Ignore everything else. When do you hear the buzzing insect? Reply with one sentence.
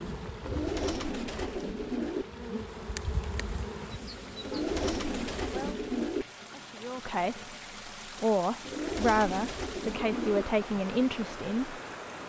The buzzing insect can be heard from 0.0 to 5.7 s.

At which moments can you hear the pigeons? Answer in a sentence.
The pigeons can be heard from 0.4 to 2.2 s, from 4.4 to 6.2 s and from 8.6 to 10.4 s.